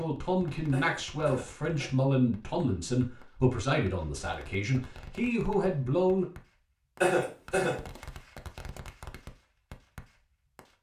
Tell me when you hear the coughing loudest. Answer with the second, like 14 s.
7 s.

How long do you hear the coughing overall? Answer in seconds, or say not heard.
2 s.